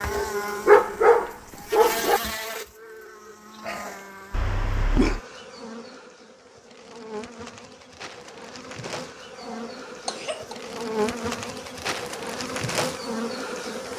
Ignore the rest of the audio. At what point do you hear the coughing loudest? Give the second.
5 s.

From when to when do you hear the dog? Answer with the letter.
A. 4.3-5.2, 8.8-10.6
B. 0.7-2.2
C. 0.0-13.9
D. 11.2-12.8
B.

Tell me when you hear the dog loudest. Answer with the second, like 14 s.
1 s.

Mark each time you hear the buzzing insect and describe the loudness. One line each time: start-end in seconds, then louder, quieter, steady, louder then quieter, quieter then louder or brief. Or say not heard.
0.0-13.9 quieter then louder.